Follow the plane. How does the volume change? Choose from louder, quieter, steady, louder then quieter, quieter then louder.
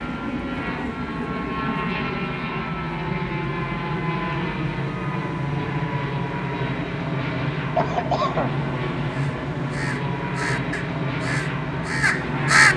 steady.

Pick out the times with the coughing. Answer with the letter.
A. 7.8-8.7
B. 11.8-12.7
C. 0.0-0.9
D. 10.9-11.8
A.